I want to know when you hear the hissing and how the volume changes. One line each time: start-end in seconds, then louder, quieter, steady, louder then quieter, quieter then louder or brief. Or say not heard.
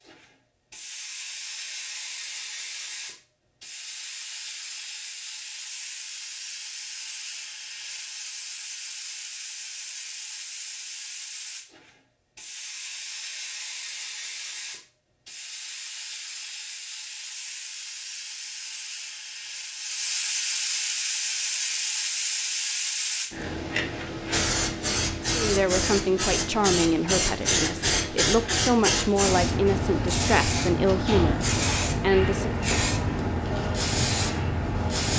0.1-35.1 louder.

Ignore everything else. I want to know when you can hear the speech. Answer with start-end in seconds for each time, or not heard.
25.4-32.6.